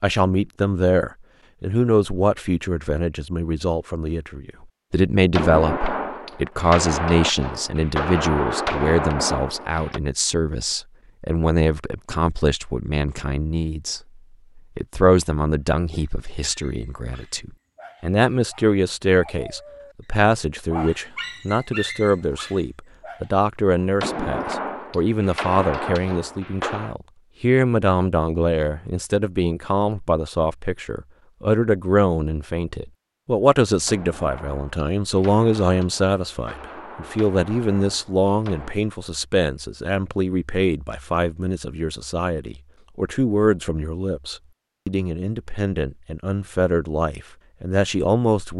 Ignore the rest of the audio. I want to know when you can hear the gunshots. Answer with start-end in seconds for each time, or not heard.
5.3-10.0, 24.0-26.9, 33.9-38.8.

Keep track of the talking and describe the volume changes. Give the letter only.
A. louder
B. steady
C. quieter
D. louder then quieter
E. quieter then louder
B.